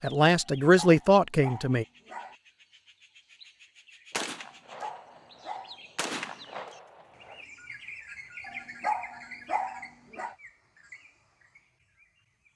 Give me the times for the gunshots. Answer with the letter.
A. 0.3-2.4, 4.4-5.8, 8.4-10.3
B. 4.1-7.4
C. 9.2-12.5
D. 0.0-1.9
B.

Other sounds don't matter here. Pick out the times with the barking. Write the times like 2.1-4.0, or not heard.
0.3-2.4, 4.4-5.8, 8.4-10.3.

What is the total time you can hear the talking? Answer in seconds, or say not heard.
2 s.